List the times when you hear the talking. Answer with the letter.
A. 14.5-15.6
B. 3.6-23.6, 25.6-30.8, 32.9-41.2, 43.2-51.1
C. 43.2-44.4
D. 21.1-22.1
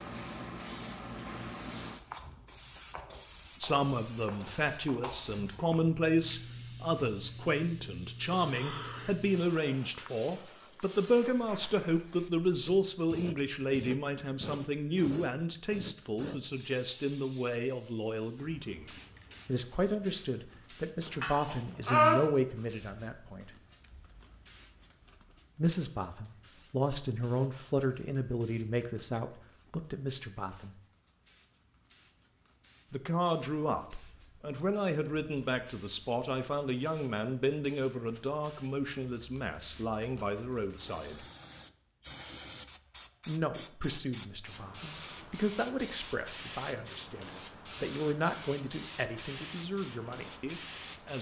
B.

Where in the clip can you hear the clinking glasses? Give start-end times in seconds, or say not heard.
21.1-22.1.